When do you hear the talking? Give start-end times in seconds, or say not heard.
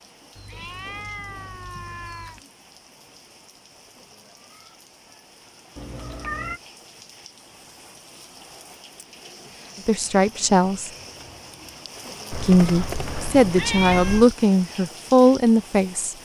9.8-10.9, 12.3-16.1.